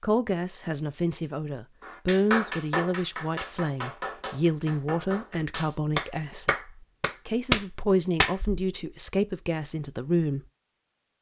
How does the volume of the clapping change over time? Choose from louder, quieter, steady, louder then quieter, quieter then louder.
quieter then louder.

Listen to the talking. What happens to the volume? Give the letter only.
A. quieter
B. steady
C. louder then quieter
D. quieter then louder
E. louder
B.